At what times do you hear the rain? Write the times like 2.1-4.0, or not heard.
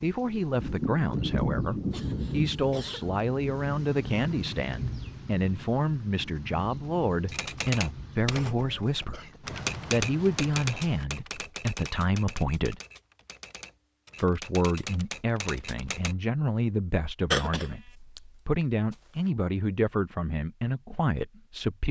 0.0-11.1.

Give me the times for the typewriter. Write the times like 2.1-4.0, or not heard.
7.3-16.1.